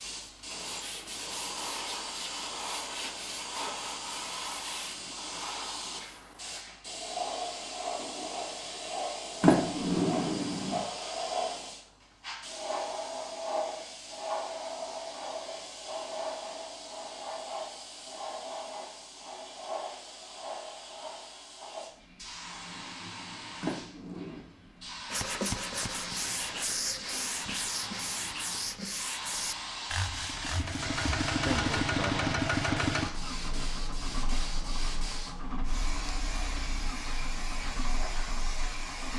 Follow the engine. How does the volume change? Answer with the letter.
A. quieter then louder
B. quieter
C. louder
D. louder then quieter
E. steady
B.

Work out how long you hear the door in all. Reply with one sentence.
The door can be heard for 2 seconds in total.